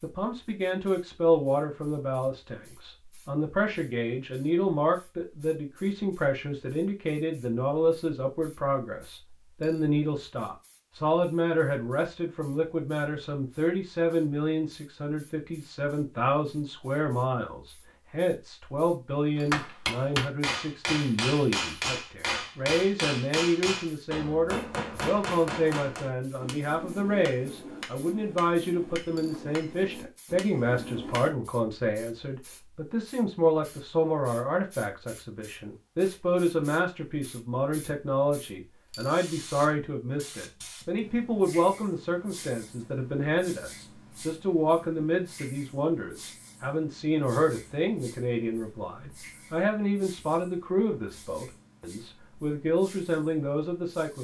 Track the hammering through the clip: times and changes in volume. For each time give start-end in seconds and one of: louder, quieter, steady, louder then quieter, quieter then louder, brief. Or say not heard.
19.4-31.3 quieter.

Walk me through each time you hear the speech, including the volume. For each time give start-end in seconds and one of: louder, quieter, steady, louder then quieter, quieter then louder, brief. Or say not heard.
0.0-54.1 steady.